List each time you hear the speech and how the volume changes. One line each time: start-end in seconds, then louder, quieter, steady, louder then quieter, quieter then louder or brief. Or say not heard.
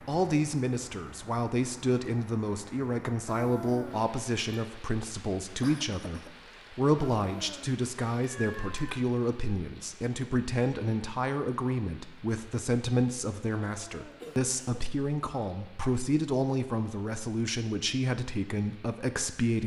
0.1-19.6 steady.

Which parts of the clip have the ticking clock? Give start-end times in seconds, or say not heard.
not heard.